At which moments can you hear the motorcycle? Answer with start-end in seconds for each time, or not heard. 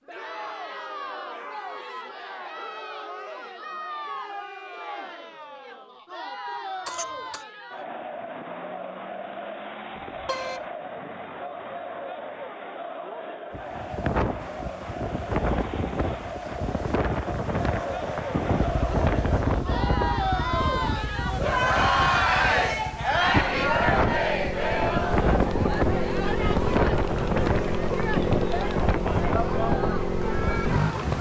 18.6-31.1.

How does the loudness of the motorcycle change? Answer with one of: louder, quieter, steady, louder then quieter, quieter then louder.
quieter then louder.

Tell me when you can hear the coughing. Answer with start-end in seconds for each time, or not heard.
6.8-7.5.